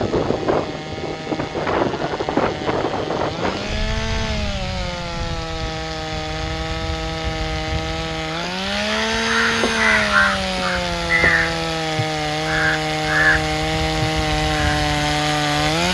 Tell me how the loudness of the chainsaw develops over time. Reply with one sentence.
The loudness of the chainsaw goes up.